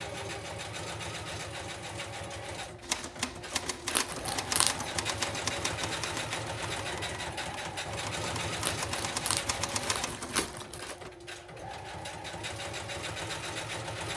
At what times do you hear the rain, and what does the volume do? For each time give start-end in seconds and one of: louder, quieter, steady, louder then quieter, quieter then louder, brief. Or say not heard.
not heard.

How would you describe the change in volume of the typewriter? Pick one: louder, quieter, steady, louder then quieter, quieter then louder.
quieter then louder.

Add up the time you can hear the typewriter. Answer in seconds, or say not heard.
8 s.